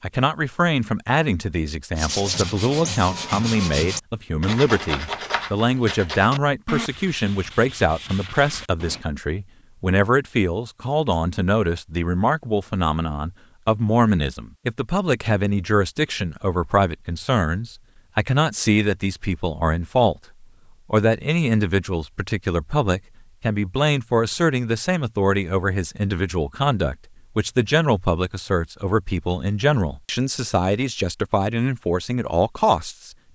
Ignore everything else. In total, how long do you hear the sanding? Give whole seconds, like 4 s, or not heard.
7 s.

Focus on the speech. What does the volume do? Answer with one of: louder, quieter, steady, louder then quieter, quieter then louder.
steady.